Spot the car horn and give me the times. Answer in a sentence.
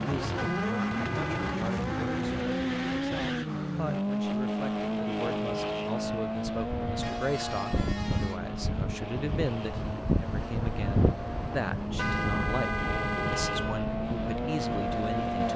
The car horn can be heard from 0.3 to 1.6 s, from 7.0 to 8.4 s and from 11.9 to 13.8 s.